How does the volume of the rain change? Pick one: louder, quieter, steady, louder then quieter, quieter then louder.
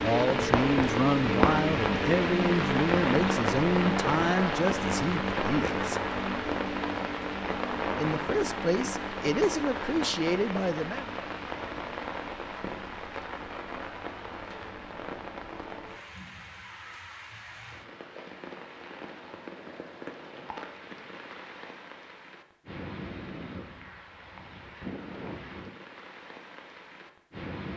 quieter.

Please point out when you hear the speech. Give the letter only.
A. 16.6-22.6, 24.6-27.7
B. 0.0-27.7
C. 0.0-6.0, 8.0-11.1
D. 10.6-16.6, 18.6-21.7
C.